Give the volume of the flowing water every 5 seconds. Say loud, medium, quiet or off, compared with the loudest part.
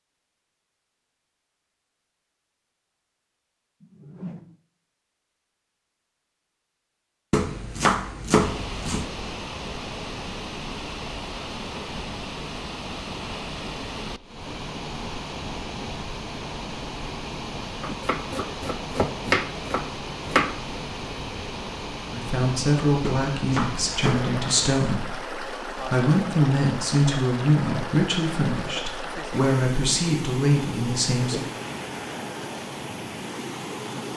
off, loud, loud, loud, loud, loud, loud.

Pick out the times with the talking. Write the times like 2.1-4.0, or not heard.
22.1-31.4.